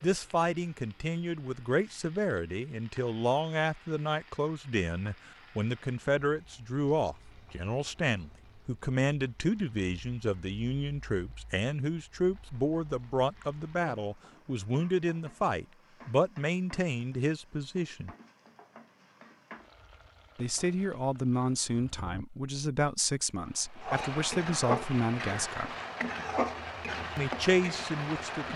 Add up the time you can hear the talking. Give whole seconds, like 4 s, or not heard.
25 s.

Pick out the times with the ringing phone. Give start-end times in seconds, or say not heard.
not heard.